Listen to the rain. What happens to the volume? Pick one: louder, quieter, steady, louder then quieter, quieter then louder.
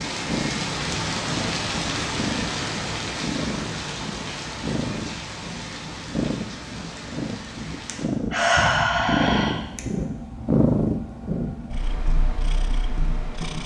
quieter.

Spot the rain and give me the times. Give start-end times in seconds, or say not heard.
0.0-8.1.